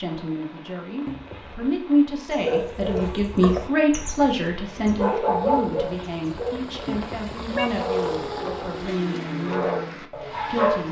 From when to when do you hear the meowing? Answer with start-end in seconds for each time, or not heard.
1.1-1.7, 6.8-7.7.